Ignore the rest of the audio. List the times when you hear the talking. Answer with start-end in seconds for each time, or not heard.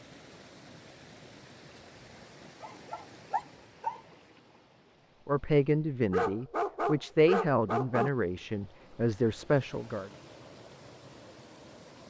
5.2-10.1.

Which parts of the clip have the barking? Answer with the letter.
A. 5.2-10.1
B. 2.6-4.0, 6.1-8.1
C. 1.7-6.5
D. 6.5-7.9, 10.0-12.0
B.